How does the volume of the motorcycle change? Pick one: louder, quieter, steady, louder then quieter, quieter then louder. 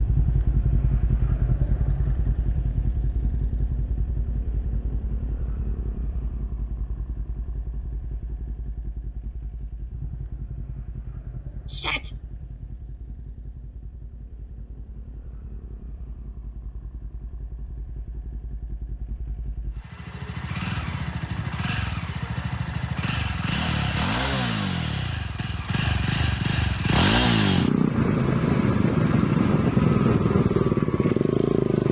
quieter then louder.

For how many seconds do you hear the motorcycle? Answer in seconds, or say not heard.
32 s.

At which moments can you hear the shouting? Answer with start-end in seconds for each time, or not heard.
11.7-12.2.